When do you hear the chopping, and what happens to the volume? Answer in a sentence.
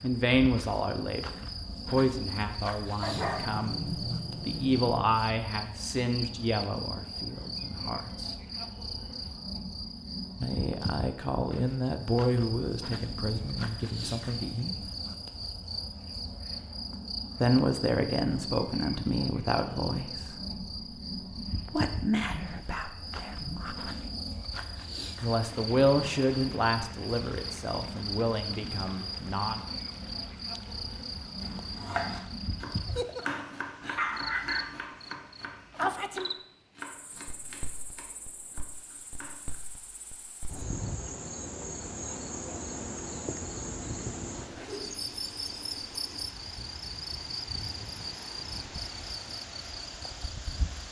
The chopping can be heard from 31.4 to 39.5 s, getting quieter.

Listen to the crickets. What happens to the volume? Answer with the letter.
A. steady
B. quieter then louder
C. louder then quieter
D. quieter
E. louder
A.